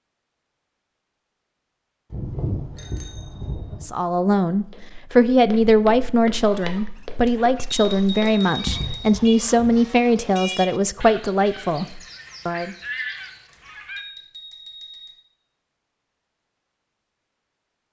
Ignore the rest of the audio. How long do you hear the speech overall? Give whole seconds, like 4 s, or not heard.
9 s.